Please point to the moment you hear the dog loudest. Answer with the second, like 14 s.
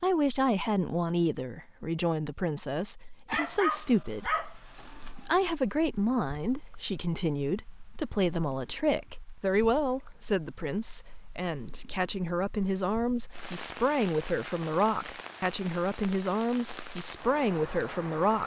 4 s.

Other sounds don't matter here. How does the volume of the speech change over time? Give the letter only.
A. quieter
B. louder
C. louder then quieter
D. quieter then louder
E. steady
E.